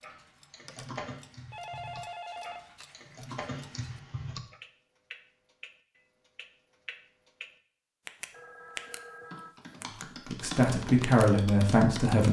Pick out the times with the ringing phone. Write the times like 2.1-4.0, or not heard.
1.5-2.9, 8.3-9.6.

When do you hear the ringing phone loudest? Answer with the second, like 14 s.
2 s.